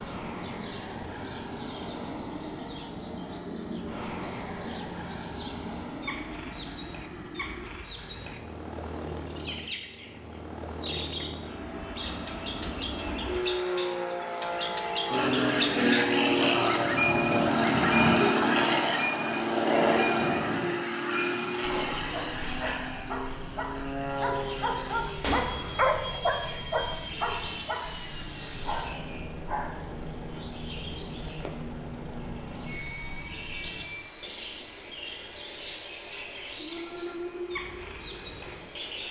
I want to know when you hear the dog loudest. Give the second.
26 s.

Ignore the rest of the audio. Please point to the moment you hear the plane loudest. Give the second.
18 s.